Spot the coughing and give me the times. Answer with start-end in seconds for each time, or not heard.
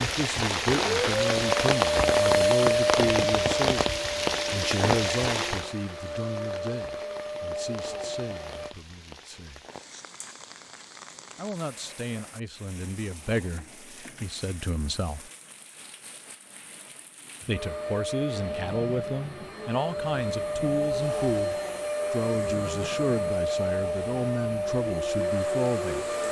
not heard.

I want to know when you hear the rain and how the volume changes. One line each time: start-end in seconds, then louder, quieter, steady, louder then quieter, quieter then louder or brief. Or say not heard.
0.0-26.2 quieter.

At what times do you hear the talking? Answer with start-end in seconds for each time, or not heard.
0.0-3.9, 4.5-9.7, 11.3-15.3, 17.4-26.1.